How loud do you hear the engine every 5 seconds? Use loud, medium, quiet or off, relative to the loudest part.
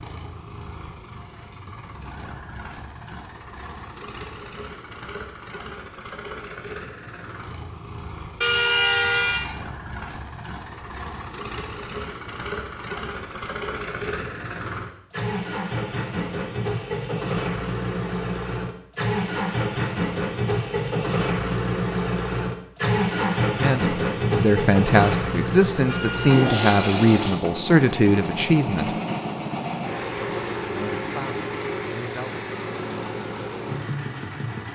quiet, quiet, medium, loud, loud, loud, medium.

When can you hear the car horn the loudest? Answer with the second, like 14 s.
9 s.